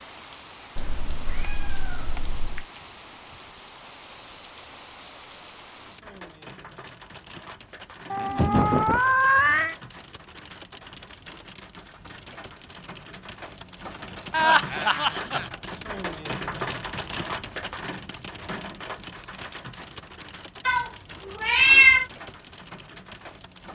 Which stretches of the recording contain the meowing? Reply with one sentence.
The meowing can be heard from 0.8 to 2.6 s, from 8.1 to 9.8 s and from 20.6 to 22.1 s.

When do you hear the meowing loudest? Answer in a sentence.
The loudest moment of the meowing is at 22 seconds.